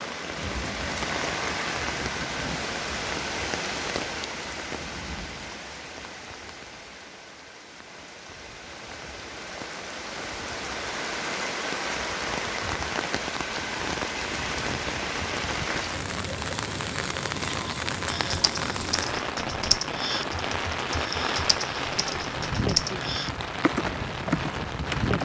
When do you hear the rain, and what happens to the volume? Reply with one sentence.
The rain can be heard from 0.0 to 25.2 s, getting quieter then louder.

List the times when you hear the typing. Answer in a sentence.
You can hear the typing from 18.1 to 25.2 s.